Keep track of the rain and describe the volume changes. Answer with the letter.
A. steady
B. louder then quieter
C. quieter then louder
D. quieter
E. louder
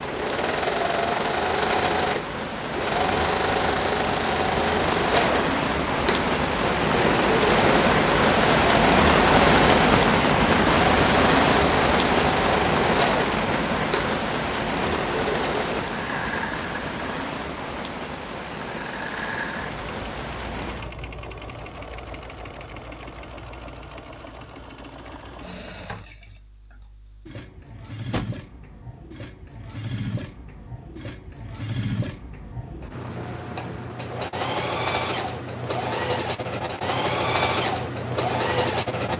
B.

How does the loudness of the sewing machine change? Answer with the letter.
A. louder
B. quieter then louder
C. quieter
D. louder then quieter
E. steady
B.